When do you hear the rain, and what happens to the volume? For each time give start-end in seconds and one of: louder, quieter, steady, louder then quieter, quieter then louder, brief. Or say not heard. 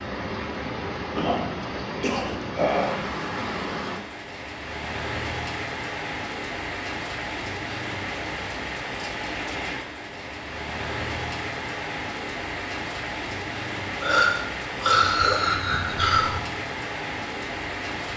0.0-18.1 steady.